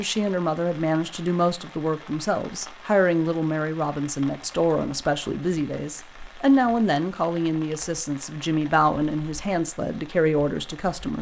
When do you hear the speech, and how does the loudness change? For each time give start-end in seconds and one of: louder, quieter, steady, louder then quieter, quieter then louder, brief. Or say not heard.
0.0-11.1 steady.